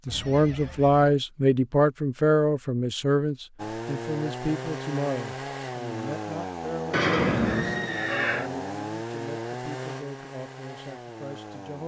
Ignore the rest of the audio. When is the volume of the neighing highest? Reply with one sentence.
The volume of the neighing peaks at 7 seconds.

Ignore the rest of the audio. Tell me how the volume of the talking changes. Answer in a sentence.
The volume of the talking goes down.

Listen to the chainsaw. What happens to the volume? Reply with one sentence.
The volume of the chainsaw goes down.